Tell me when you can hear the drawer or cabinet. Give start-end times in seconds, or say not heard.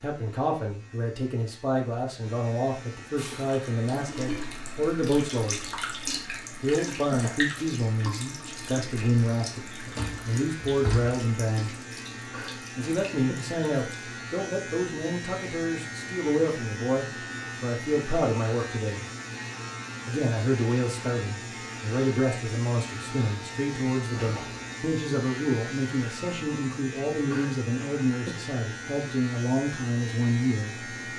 9.8-11.2, 24.1-24.7.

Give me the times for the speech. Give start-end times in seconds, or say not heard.
0.0-5.6, 6.6-11.8, 12.8-19.1, 20.1-30.9.